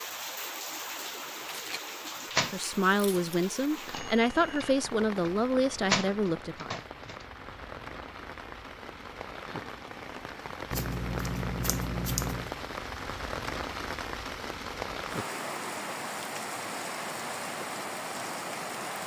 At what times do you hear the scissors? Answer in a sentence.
The scissors can be heard from 2.9 to 3.4 s and from 10.7 to 12.6 s.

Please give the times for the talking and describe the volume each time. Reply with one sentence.
The talking can be heard from 2.5 to 6.7 s, at a steady volume.